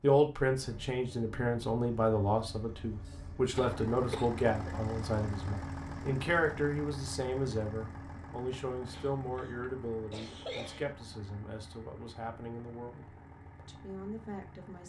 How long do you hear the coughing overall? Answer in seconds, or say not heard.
4 s.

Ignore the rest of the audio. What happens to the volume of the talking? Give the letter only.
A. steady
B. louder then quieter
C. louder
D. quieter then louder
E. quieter
E.